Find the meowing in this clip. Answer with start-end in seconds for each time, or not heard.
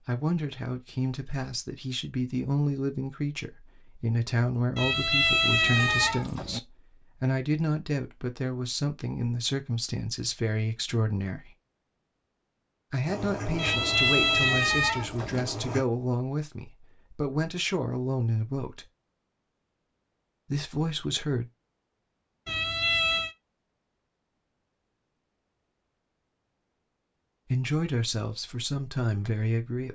4.8-6.6, 13.6-15.4, 22.4-23.4.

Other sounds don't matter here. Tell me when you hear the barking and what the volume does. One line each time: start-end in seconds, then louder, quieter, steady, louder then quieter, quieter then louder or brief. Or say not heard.
not heard.